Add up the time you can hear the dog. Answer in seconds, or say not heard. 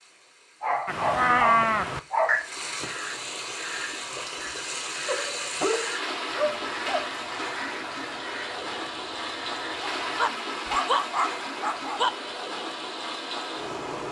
6 s.